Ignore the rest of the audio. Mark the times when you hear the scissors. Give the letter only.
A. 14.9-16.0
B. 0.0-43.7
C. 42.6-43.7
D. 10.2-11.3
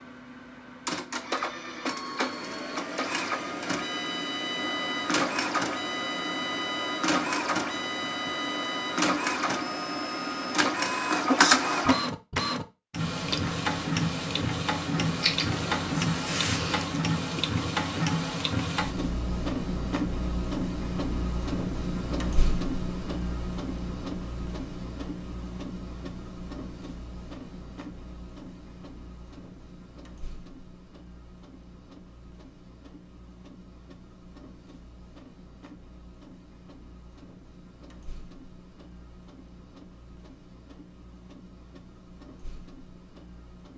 A.